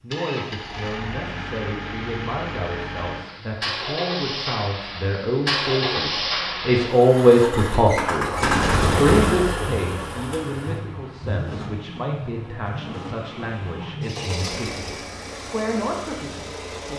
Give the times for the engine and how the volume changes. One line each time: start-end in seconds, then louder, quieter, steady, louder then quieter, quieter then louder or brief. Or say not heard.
0.1-16.9 louder then quieter.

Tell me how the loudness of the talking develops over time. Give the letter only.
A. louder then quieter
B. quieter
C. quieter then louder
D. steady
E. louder
A.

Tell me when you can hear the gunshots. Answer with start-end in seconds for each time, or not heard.
8.4-9.4.